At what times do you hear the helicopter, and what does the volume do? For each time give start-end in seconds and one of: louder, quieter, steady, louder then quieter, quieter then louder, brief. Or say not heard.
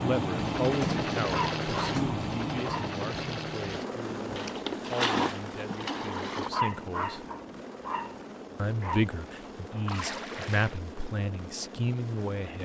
0.0-12.5 quieter.